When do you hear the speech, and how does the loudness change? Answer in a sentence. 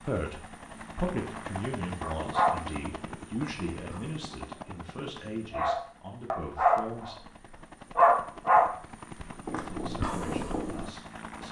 You can hear the speech from 0.0 to 7.2 s, getting quieter; and briefly from 9.7 to 11.4 s.